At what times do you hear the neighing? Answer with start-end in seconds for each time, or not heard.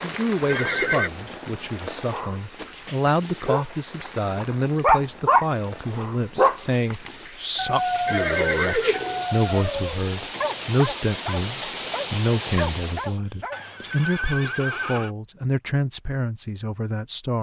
0.5-1.1, 8.1-9.2, 13.5-15.1.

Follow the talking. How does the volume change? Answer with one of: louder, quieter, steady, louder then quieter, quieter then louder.
steady.